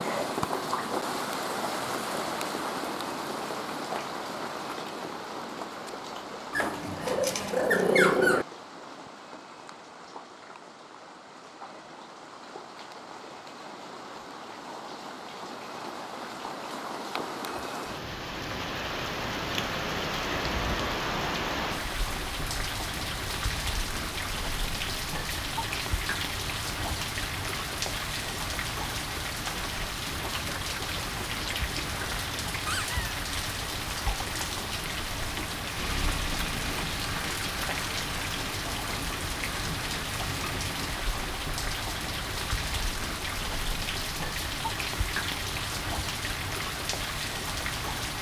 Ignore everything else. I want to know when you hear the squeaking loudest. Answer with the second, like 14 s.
8 s.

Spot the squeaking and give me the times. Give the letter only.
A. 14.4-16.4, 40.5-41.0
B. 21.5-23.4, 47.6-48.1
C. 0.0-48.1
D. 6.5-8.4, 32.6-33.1
D.